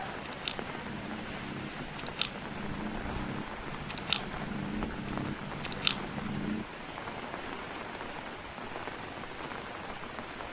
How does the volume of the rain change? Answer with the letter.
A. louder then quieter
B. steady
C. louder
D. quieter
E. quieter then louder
B.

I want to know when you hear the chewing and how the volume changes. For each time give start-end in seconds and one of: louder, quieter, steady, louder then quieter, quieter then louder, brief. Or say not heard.
0.0-6.7 louder.